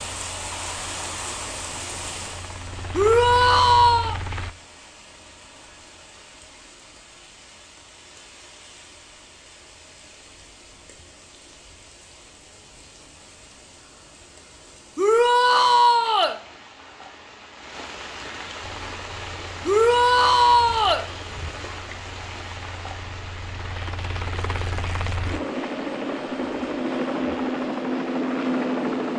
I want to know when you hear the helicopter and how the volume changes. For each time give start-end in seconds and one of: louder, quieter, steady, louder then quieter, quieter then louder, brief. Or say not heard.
0.1-4.5 louder
18.6-29.1 louder.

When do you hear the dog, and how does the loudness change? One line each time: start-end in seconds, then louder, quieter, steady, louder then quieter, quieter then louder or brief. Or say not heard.
not heard.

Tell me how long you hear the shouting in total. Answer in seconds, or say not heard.
4 s.